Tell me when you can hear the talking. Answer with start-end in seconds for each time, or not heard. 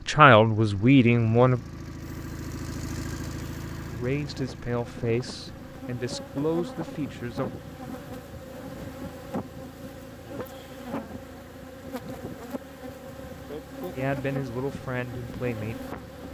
0.1-1.6, 3.9-7.6, 13.9-15.8.